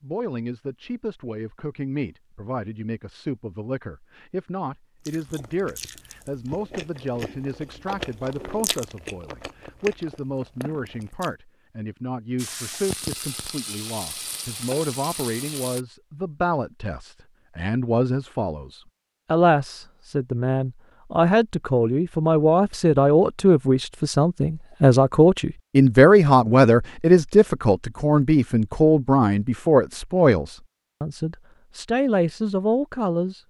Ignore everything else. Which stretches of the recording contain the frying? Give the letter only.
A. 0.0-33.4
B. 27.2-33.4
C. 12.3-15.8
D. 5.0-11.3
C.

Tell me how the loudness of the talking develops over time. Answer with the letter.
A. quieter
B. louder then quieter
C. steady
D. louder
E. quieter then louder
D.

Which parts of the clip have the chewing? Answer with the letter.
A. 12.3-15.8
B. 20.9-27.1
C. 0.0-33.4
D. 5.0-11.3
D.